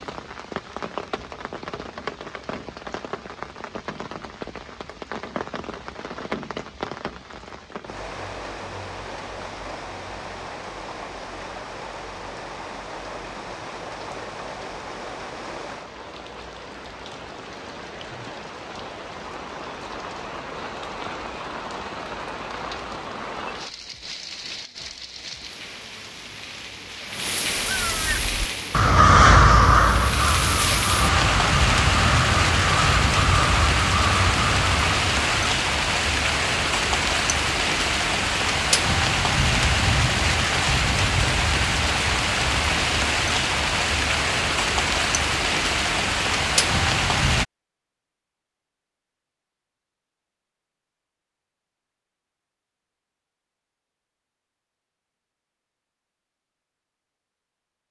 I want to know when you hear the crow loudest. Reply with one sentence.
The volume of the crow peaks at 29 seconds.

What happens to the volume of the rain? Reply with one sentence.
The loudness of the rain goes up.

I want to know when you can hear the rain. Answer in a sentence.
You can hear the rain from 0.0 to 47.5 s.